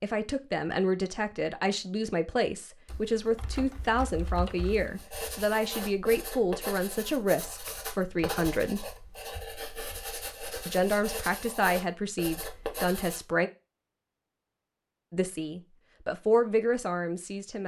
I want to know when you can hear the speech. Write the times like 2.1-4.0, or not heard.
0.0-8.8, 10.7-13.5, 15.1-17.6.